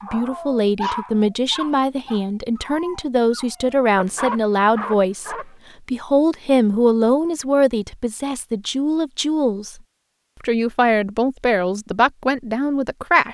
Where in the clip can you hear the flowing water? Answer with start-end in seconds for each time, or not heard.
not heard.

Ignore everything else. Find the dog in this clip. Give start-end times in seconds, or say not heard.
0.0-5.5.